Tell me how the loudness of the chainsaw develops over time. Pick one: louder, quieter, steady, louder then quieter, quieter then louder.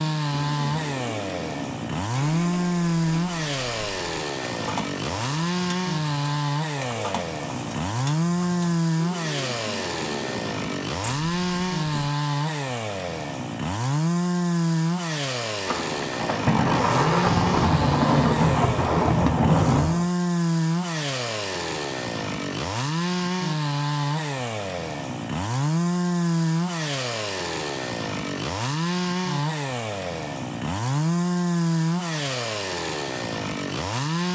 steady.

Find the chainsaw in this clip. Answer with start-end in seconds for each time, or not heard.
0.0-34.2.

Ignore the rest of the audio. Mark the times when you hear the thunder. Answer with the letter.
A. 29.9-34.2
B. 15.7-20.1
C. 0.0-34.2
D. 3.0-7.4
B.